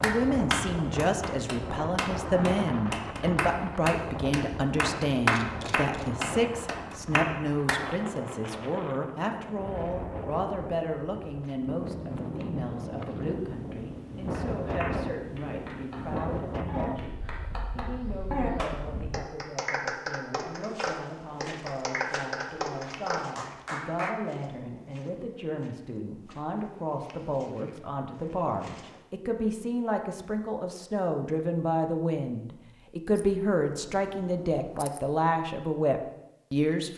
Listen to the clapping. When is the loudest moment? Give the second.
5 s.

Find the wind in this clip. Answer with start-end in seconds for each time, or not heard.
0.0-19.2.